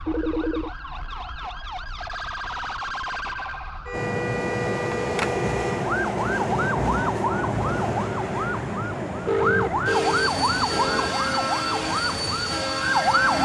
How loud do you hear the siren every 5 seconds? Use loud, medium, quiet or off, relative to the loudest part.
medium, loud, loud.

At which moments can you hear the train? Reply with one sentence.
You can hear the train from 3.9 to 13.4 s.